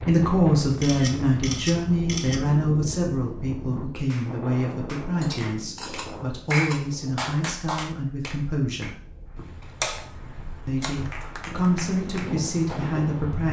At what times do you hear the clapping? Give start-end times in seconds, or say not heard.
4.1-8.9, 10.8-13.4.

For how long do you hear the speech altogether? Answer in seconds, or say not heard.
12 s.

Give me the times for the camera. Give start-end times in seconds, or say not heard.
0.8-2.4, 5.2-7.1, 9.3-11.0.